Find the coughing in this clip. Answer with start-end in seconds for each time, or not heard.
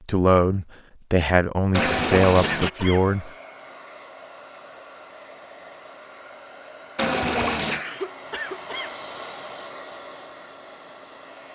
1.8-3.1, 7.7-9.0.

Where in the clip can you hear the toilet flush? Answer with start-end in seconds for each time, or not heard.
1.7-2.7, 7.0-7.8.